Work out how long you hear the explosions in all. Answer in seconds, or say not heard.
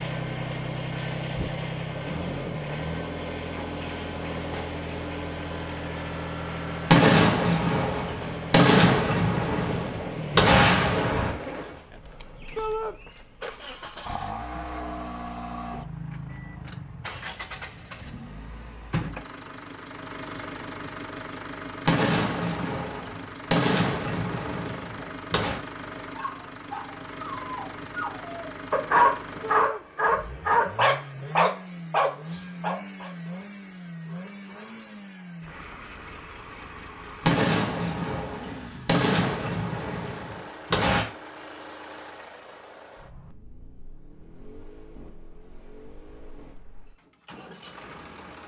12 s.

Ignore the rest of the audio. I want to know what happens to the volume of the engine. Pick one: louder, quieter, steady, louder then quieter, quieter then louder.
quieter.